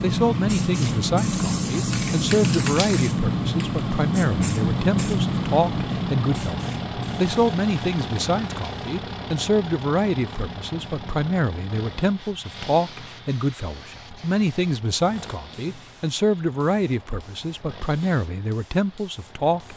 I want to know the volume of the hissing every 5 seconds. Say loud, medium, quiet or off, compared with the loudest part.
loud, medium, quiet, quiet.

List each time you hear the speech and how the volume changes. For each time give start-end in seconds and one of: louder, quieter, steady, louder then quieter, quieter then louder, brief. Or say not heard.
0.0-19.7 steady.